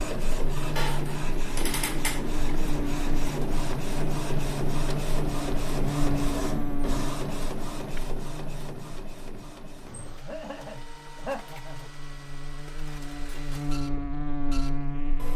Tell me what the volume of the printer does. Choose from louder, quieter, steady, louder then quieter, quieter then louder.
quieter.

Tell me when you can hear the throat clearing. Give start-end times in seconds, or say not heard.
10.2-11.9.